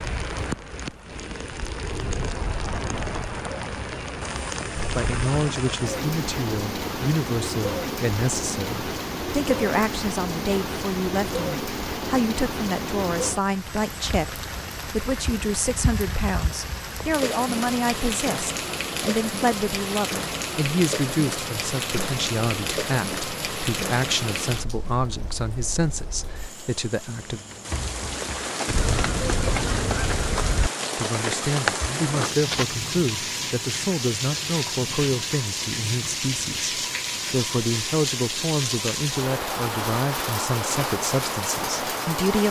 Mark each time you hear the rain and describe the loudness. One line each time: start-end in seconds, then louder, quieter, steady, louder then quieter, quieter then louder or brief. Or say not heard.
0.0-42.4 steady.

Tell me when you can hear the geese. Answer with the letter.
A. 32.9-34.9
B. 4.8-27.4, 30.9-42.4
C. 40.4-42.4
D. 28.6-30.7
D.